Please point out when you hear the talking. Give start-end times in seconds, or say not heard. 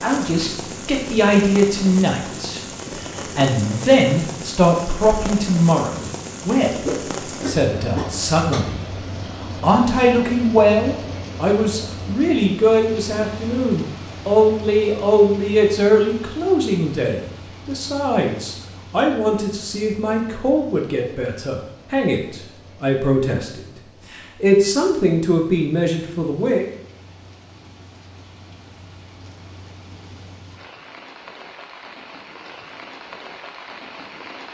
0.0-2.6, 3.4-8.8, 9.6-23.6, 24.4-26.6.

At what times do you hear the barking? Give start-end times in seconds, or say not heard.
6.8-8.8.